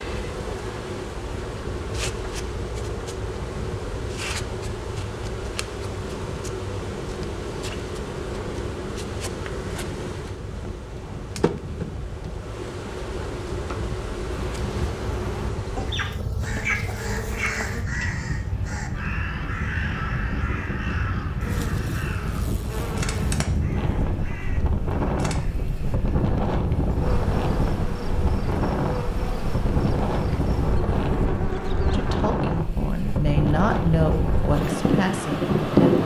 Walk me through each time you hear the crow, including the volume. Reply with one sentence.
The crow can be heard from 14.3 to 25.6 s, getting quieter.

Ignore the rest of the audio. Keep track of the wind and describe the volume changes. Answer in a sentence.
The loudness of the wind goes up.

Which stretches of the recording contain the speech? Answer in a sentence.
The speech can be heard from 31.9 to 36.0 s.